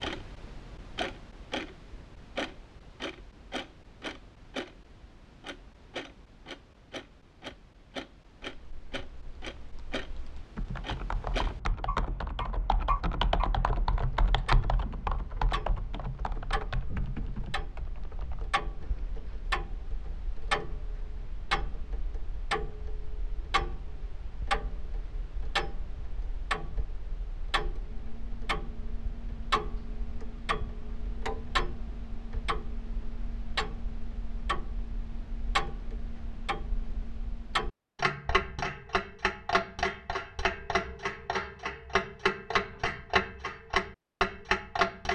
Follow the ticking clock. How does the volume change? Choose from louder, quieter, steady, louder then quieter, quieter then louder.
louder.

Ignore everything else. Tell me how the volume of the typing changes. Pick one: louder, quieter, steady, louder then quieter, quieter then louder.
louder then quieter.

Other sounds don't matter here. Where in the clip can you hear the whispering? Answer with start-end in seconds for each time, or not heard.
not heard.